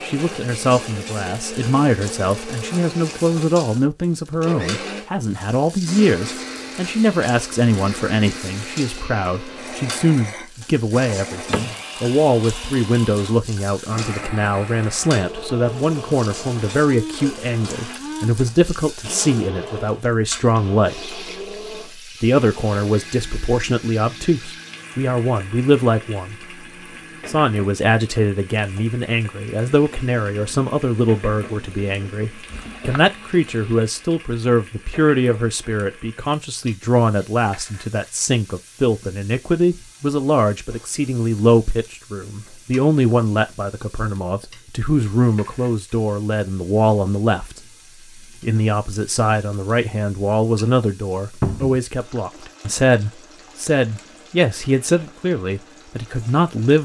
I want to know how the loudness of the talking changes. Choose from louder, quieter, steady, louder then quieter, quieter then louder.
steady.